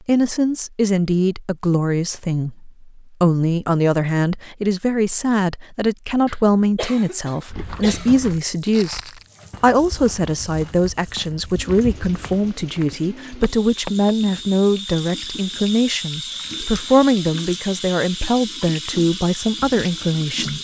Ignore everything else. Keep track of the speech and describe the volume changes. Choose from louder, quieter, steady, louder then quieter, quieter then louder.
steady.